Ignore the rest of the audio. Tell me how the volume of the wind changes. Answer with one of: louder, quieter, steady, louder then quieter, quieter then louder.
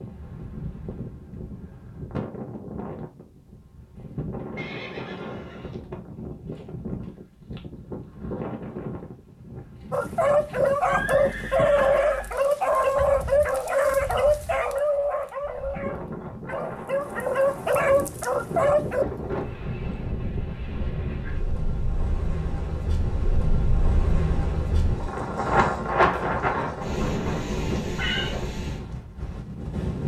louder.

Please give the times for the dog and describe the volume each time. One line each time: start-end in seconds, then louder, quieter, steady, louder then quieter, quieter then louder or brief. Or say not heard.
9.9-19.1 quieter then louder.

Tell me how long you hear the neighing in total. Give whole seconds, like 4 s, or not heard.
3 s.